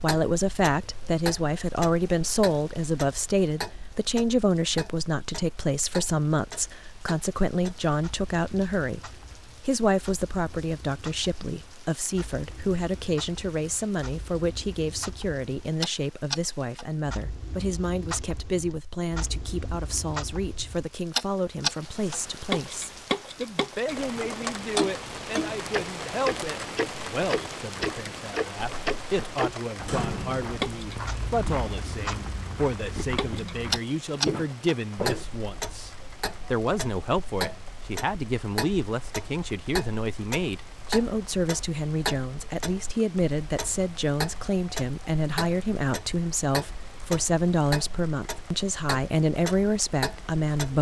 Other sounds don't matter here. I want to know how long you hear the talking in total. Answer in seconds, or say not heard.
51 s.